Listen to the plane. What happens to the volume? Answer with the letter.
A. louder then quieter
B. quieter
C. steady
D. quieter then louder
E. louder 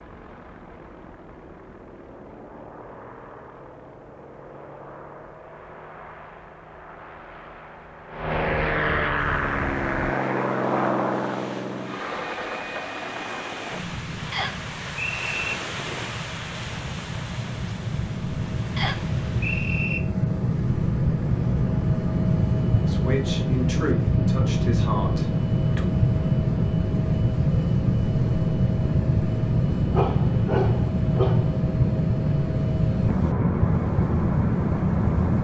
E.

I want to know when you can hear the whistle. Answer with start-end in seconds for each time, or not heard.
14.3-15.6, 18.8-20.0.